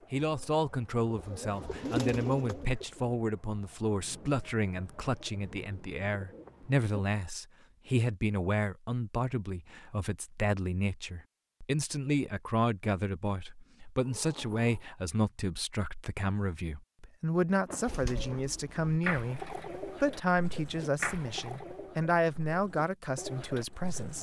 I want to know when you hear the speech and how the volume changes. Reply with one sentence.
You can hear the speech from 0.1 to 24.1 s, at a steady volume.